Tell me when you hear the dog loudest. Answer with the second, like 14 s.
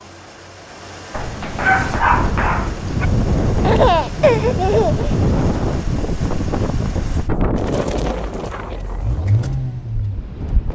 2 s.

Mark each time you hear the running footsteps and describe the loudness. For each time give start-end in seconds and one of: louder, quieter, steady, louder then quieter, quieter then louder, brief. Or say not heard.
not heard.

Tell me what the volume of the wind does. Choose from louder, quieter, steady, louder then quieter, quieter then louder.
quieter.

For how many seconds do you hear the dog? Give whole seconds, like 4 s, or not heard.
2 s.